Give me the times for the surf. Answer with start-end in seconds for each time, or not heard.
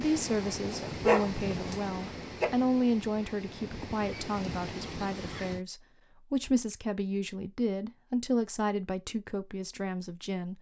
0.0-5.6.